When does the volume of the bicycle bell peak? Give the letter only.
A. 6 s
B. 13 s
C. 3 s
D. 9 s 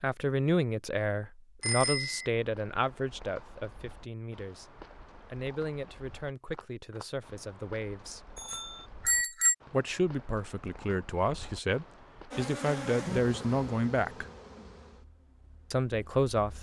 D.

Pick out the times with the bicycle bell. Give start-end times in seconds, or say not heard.
1.6-2.3, 8.3-9.6.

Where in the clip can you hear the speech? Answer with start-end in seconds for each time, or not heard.
0.0-8.2, 9.7-14.2, 15.7-16.5.